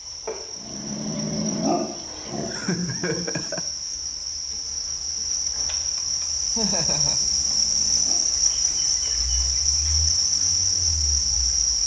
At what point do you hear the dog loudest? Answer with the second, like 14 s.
2 s.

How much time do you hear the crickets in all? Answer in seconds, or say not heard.
12 s.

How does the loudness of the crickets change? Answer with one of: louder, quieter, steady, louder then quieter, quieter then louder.
louder.